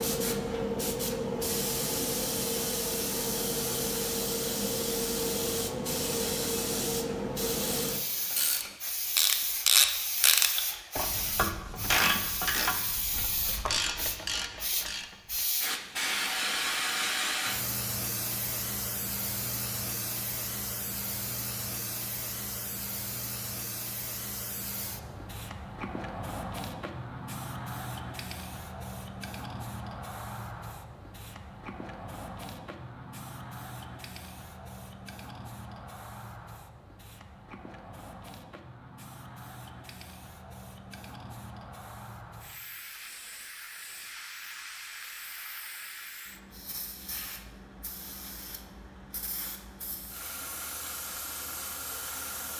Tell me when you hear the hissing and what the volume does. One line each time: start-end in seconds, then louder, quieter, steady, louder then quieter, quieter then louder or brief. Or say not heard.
0.0-52.5 quieter.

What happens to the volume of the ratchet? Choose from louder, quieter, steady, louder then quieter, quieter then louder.
quieter.